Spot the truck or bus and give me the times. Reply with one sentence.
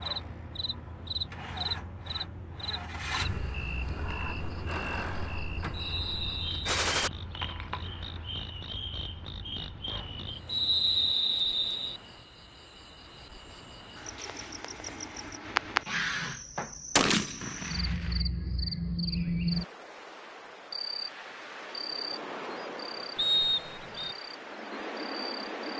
The truck or bus can be heard from 0.0 to 11.2 s.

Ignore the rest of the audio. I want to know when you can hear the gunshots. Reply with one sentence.
You can hear the gunshots from 6.7 to 7.1 s and from 16.9 to 18.1 s.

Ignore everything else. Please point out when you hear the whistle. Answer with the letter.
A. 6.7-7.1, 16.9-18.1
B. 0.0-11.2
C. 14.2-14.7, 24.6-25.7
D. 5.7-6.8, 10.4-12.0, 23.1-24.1
D.